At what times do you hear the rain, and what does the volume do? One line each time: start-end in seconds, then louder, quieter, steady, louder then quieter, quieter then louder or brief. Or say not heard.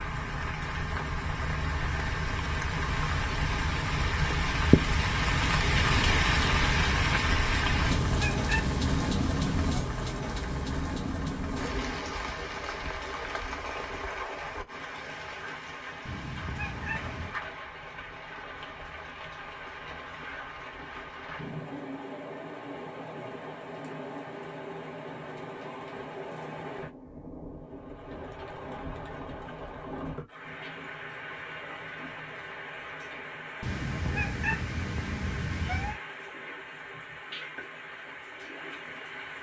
0.0-39.3 quieter.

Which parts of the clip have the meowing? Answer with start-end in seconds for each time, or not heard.
7.7-9.8, 16.1-17.4, 33.6-36.0.